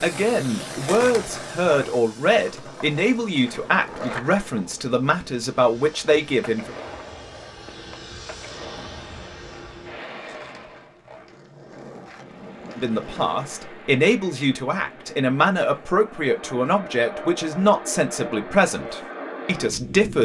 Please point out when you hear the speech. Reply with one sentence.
The speech can be heard from 0.0 to 6.7 s and from 12.8 to 20.1 s.